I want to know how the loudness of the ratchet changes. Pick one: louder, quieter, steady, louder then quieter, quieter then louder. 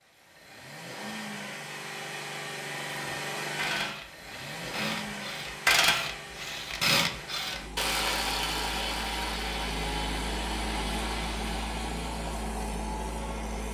louder then quieter.